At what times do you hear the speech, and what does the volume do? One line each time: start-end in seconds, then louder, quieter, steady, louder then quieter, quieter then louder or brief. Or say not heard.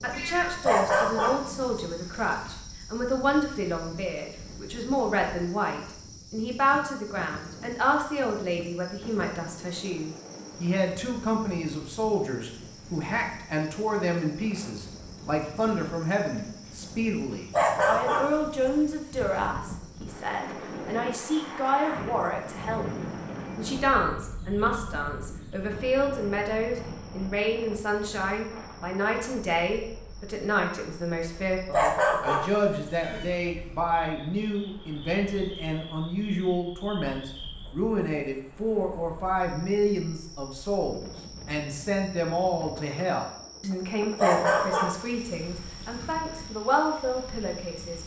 0.0-48.0 steady.